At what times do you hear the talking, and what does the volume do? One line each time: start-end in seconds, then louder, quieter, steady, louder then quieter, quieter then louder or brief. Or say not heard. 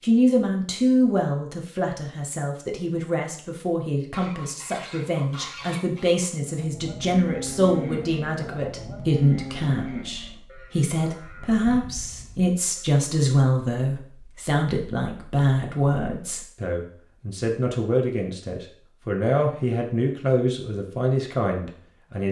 0.0-22.2 steady.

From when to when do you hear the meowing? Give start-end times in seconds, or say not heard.
not heard.